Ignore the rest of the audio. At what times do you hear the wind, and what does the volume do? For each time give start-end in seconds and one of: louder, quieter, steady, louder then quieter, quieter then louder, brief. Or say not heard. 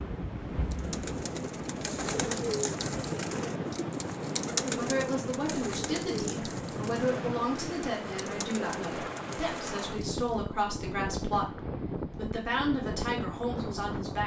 0.0-14.2 steady.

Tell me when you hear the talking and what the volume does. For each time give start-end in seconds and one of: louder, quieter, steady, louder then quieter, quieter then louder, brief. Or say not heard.
4.8-14.2 steady.